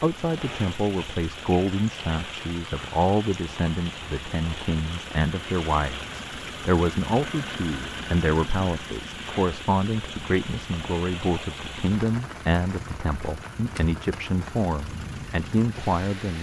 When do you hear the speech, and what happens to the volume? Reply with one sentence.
You can hear the speech from 0.0 to 16.3 s, at a steady volume.